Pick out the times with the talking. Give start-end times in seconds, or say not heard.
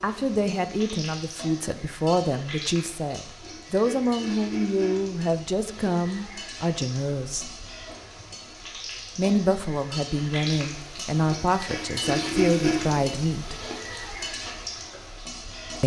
0.0-7.5, 9.2-13.6.